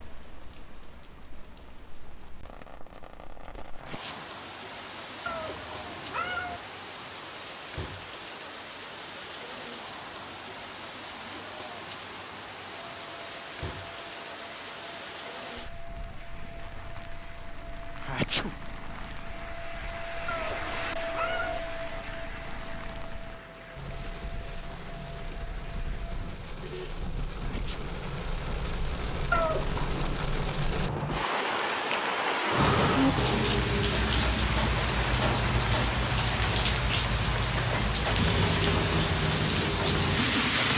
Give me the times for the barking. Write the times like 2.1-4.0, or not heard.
not heard.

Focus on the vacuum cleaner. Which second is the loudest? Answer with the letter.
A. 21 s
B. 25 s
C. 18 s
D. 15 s
A.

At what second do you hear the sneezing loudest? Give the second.
18 s.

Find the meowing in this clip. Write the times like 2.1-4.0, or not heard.
5.2-6.6, 20.2-21.6, 29.3-30.2.